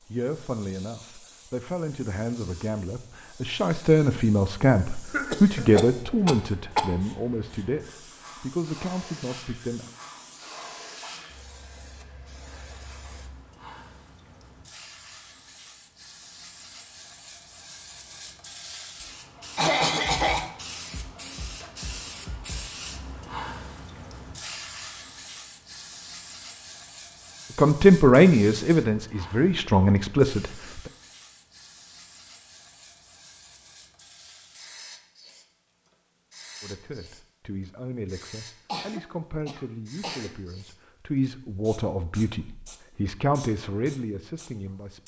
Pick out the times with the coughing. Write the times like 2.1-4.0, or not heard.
5.1-7.0, 19.6-20.5, 38.6-40.4.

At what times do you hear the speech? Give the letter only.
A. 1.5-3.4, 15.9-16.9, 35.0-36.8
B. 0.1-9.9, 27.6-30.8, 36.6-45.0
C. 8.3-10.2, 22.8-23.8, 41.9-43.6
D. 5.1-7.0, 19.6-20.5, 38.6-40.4
B.